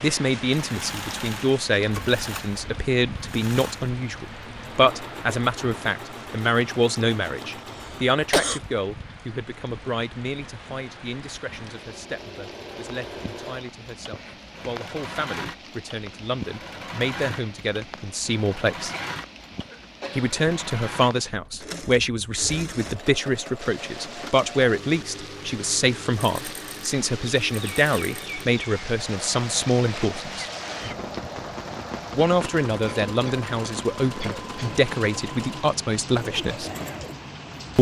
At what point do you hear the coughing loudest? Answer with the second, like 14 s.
8 s.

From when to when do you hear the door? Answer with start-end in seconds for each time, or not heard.
not heard.